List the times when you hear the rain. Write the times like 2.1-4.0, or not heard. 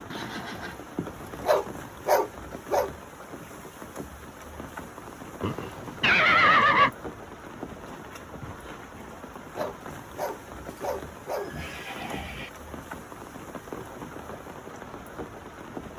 0.0-15.9.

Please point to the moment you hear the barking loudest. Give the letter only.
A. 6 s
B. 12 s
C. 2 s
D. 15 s
C.